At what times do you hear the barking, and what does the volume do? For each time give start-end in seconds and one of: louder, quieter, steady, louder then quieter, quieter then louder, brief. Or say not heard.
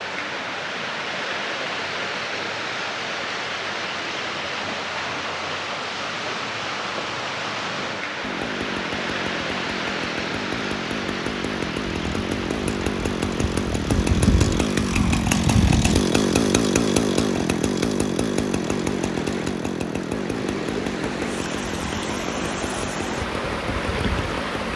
not heard.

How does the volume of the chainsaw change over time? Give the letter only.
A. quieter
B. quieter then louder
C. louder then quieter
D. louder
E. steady
C.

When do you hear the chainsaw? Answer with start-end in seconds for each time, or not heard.
8.2-24.7.